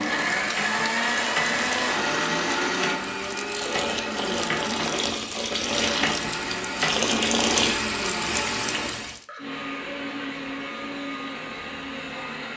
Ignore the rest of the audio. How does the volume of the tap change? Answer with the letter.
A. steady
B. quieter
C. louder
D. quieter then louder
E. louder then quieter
C.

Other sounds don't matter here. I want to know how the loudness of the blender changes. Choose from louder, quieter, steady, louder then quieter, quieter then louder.
quieter.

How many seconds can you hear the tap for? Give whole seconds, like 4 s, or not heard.
9 s.